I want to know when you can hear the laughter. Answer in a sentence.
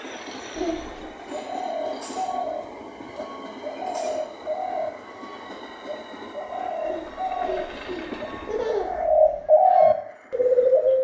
The laughter can be heard from 0.6 to 1.1 s and from 6.8 to 9.4 s.